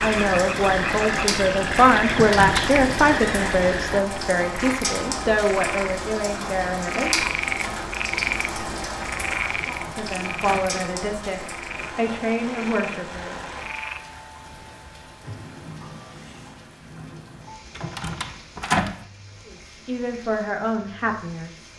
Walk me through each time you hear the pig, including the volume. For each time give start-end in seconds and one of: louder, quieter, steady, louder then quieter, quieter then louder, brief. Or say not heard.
not heard.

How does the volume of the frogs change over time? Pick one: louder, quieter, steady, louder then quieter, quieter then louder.
quieter.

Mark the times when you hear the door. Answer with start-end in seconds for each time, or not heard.
2.1-2.7, 9.6-10.7, 17.8-19.0.